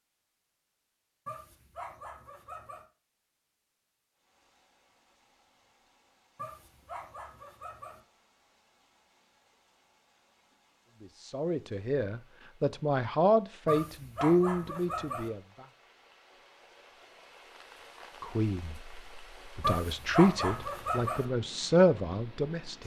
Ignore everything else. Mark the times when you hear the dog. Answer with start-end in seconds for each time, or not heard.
1.2-2.8, 6.3-8.0, 13.7-15.3, 19.6-21.2.